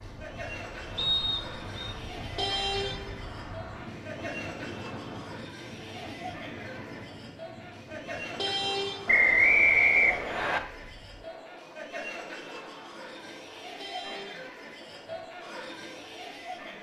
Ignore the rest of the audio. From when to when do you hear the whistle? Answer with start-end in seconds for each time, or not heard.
0.9-1.9, 9.1-10.6.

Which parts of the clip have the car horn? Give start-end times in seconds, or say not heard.
2.2-3.2, 8.2-9.1, 13.7-15.2.